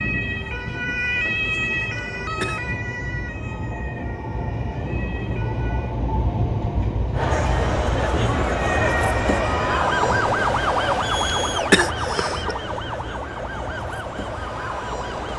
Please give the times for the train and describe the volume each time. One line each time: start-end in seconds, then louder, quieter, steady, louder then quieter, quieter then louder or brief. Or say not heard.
0.0-15.3 louder then quieter.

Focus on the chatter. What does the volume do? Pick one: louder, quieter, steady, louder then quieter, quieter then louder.
quieter.